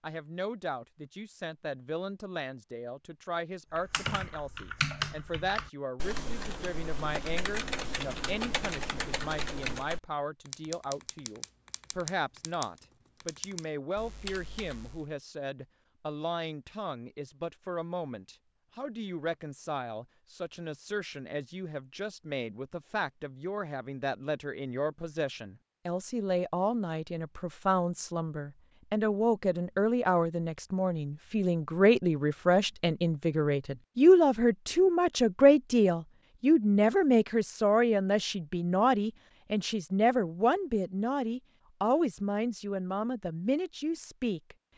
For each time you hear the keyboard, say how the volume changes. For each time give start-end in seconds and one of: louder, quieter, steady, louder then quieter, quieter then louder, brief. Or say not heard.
3.8-15.1 quieter.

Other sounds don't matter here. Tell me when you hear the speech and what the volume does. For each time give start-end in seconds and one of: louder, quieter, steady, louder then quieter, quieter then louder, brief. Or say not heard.
0.0-44.5 louder.